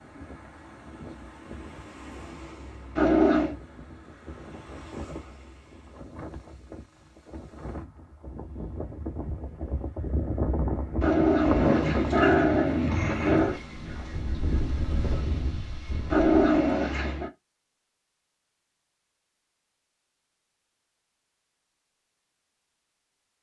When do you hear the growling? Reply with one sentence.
The growling can be heard from 3.0 to 3.5 s, from 11.0 to 13.6 s and from 16.1 to 17.3 s.